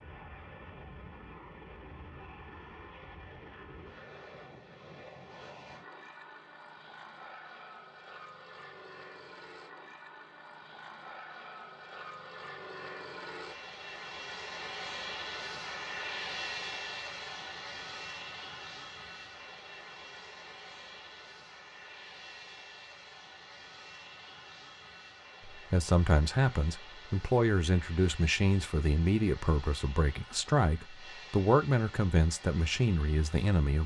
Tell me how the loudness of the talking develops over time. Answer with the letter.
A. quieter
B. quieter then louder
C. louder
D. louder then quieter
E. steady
E.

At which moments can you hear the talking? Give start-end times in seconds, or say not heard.
25.4-33.8.